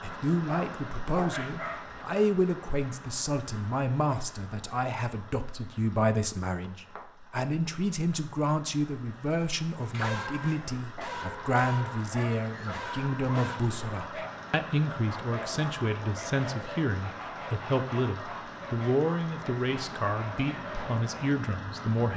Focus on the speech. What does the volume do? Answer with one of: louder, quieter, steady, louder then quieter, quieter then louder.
steady.